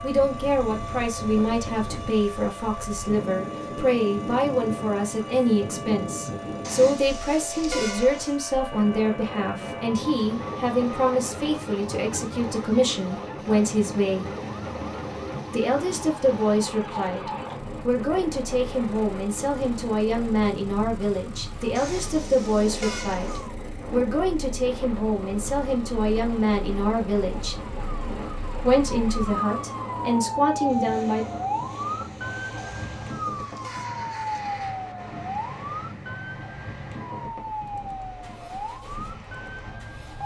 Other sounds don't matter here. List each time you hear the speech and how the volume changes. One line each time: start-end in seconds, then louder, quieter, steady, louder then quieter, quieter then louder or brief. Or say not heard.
0.0-14.3 steady
15.5-27.6 steady
28.6-31.2 brief.